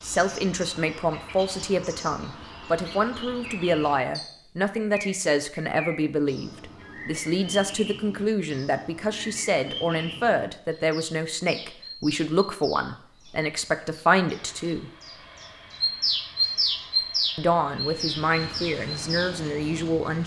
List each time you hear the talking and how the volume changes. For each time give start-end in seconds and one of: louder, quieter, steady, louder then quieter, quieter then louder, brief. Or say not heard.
0.0-14.9 steady
17.4-20.2 brief.